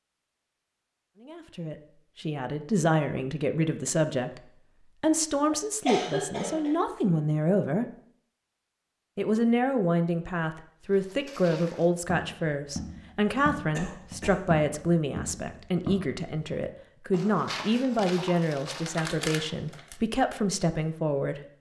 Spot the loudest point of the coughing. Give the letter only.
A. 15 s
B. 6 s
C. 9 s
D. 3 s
B.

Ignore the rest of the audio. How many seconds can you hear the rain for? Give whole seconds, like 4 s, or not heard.
not heard.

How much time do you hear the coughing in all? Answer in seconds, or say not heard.
2 s.